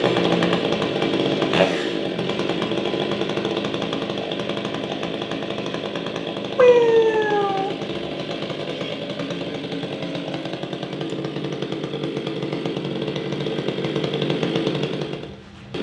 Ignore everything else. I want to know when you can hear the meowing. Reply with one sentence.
You can hear the meowing from 6.5 to 8.2 s.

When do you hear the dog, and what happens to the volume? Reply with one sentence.
The dog can't be heard in this clip.